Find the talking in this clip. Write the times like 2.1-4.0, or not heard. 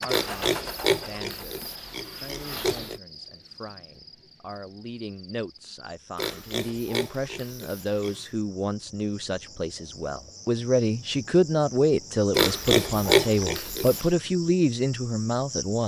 0.0-15.8.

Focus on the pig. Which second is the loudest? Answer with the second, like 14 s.
13 s.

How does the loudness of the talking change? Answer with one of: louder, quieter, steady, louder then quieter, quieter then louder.
louder.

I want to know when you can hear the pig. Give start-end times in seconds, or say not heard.
0.1-3.0, 6.2-8.2, 12.3-14.1.